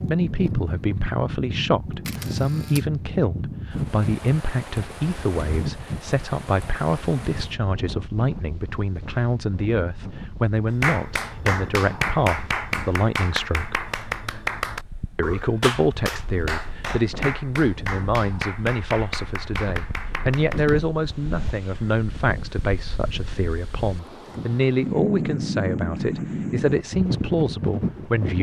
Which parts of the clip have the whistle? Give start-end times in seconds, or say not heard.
not heard.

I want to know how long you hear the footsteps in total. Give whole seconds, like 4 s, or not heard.
not heard.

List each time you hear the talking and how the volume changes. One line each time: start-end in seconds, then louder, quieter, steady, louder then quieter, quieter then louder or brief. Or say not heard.
0.1-13.8 steady
15.2-28.3 steady.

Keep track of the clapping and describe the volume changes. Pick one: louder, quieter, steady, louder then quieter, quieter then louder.
quieter.